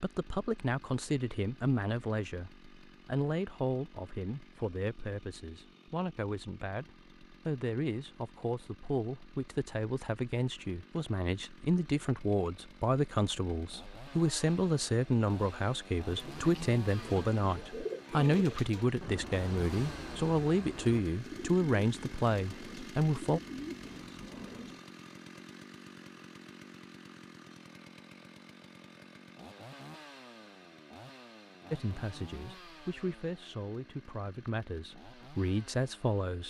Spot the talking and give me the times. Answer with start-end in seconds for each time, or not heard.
0.0-23.4, 31.7-36.4.